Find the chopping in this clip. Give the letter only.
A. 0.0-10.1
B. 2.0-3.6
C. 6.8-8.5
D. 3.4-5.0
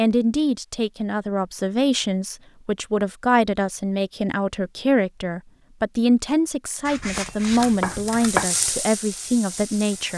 C.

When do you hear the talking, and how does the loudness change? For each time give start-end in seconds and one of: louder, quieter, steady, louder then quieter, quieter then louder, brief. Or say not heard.
0.0-10.1 steady.